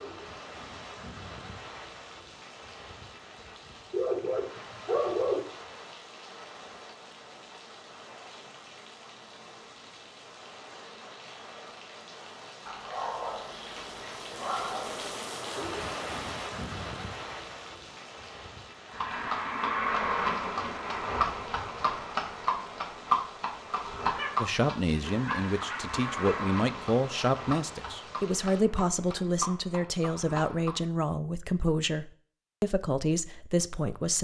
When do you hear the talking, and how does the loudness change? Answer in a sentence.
You can hear the talking from 24.4 to 34.1 s, at a steady volume.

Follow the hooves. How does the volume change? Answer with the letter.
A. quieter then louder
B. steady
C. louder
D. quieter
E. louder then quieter
D.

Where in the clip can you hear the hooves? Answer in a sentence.
The hooves can be heard from 18.9 to 30.8 s.